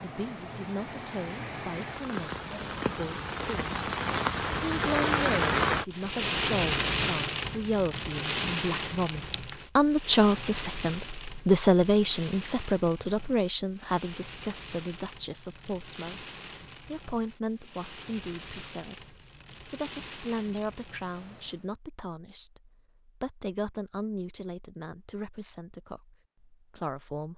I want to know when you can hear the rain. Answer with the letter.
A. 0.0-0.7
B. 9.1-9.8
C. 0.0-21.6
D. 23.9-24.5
C.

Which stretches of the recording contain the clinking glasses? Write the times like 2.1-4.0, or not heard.
9.1-9.8.